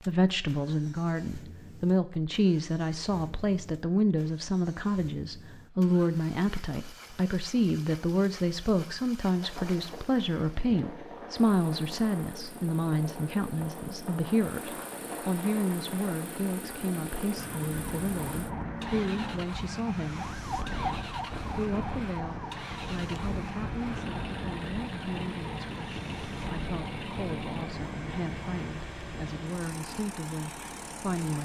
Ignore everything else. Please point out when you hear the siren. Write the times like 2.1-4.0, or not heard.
17.4-28.8.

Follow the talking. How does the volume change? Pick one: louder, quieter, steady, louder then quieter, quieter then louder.
quieter.